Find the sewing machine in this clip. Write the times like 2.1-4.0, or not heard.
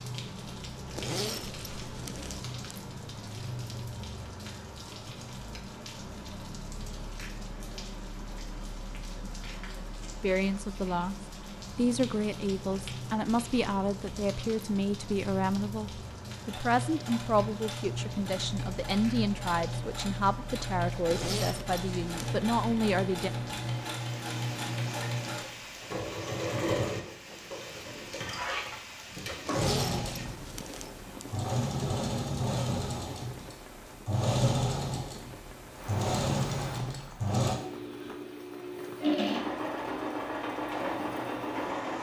16.2-41.9.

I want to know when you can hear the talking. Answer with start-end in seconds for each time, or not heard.
10.2-23.3.